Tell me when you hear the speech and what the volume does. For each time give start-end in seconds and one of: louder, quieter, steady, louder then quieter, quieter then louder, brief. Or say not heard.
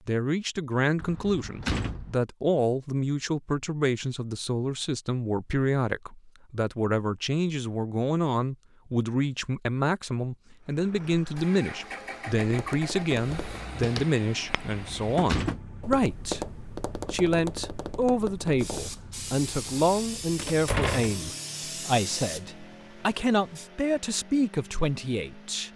0.1-25.7 steady.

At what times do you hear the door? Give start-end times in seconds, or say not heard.
1.0-2.1, 14.8-15.6, 20.4-21.2.